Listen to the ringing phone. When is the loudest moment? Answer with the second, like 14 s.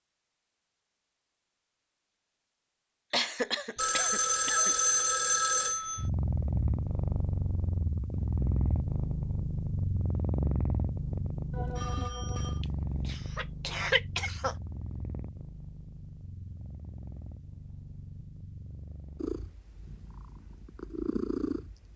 5 s.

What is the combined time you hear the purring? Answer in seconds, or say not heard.
16 s.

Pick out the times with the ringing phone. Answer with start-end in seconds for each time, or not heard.
3.8-6.0, 11.5-12.7.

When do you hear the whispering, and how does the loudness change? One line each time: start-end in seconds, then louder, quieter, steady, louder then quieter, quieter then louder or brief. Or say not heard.
not heard.